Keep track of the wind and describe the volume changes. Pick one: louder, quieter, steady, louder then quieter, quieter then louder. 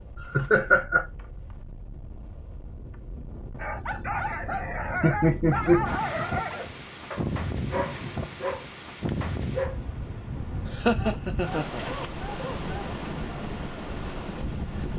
louder.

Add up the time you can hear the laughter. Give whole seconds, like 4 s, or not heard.
3 s.